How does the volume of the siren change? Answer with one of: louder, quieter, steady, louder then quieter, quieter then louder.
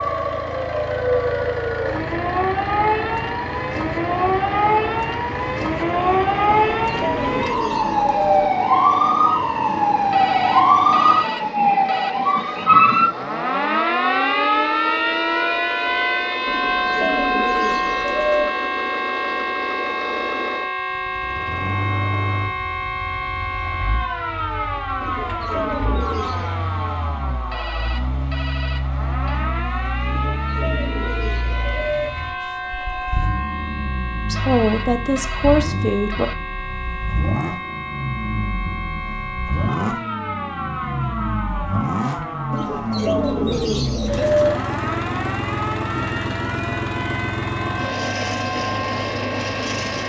quieter.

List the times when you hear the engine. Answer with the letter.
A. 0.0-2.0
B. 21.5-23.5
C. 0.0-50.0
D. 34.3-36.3
C.